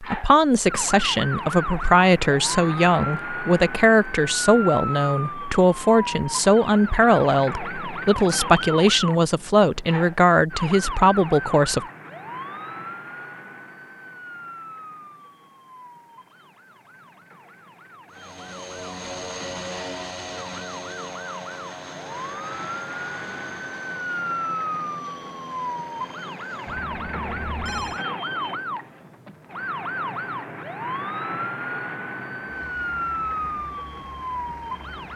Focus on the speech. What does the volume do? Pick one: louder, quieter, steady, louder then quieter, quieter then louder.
steady.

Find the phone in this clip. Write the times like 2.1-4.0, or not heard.
26.6-28.1.